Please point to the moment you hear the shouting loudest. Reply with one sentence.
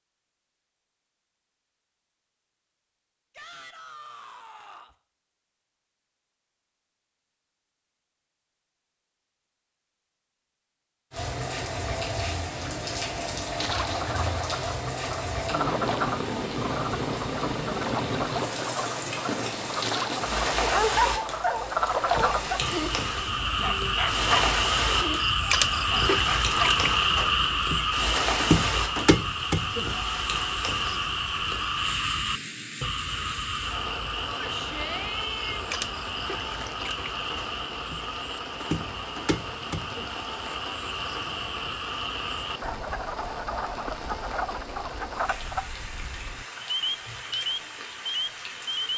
The volume of the shouting peaks at 35 seconds.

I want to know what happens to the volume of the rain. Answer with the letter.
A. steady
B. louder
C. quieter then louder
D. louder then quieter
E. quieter
E.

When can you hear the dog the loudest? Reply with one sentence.
The volume of the dog peaks at 21 seconds.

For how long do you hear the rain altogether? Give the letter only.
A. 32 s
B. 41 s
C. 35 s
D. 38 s
D.